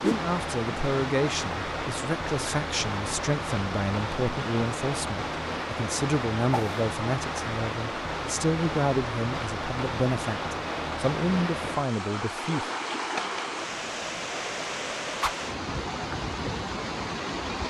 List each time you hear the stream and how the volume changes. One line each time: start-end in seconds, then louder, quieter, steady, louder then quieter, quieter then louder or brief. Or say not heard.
0.0-17.6 steady.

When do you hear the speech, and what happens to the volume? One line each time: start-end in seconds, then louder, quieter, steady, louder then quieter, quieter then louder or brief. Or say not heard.
0.0-12.7 steady.